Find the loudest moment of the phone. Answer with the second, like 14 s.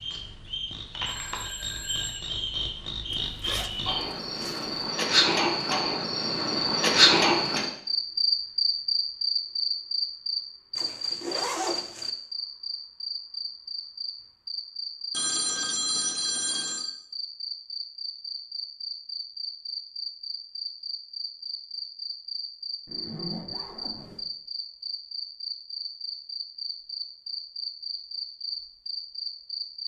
16 s.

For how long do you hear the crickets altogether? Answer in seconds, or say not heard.
30 s.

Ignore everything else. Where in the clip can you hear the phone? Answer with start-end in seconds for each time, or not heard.
1.1-2.4, 15.1-16.9.